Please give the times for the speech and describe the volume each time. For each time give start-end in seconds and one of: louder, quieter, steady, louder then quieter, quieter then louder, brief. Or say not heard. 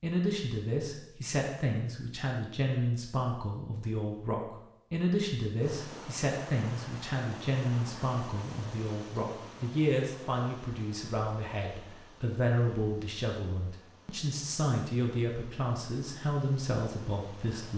0.0-17.7 steady.